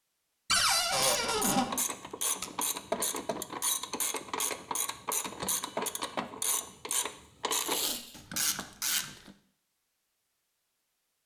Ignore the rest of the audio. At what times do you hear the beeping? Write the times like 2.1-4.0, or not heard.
not heard.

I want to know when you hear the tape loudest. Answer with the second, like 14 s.
8 s.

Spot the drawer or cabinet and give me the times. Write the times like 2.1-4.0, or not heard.
0.5-1.6.